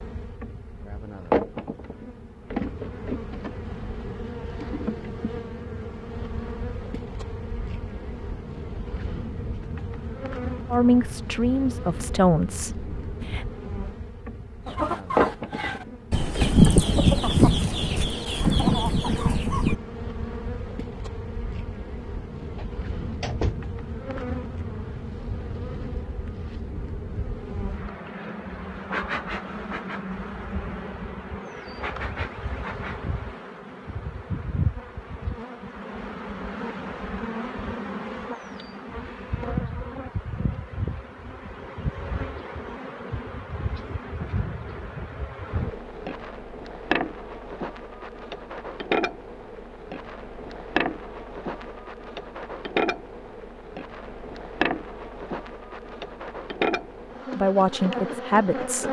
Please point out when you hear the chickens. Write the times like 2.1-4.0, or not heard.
14.7-19.8.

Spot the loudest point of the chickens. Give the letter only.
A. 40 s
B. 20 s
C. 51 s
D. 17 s
D.